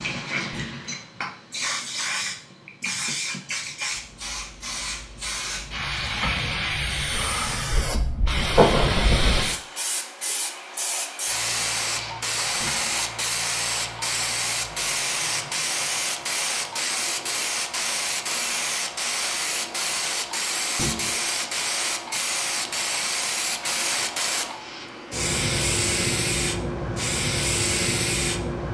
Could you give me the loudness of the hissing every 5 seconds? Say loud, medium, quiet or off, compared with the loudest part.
medium, loud, loud, loud, loud, loud.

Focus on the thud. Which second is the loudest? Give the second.
21 s.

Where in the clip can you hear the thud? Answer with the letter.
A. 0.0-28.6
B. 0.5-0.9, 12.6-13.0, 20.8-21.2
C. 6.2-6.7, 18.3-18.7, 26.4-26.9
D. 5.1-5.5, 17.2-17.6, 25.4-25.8
B.